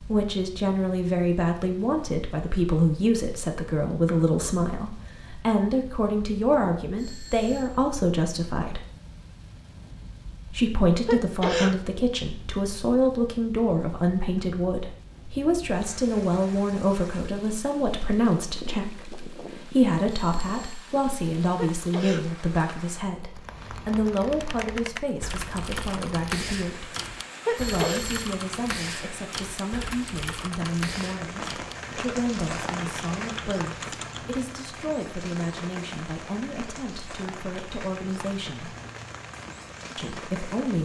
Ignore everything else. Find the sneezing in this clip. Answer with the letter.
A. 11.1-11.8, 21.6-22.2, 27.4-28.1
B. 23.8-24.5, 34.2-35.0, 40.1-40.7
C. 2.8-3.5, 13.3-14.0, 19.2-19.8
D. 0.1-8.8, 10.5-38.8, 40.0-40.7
A.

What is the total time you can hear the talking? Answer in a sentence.
You can hear the talking for 38 seconds altogether.